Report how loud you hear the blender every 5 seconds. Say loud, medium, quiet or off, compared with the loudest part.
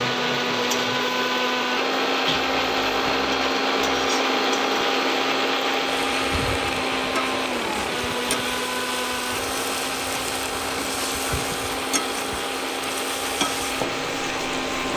loud, loud, medium.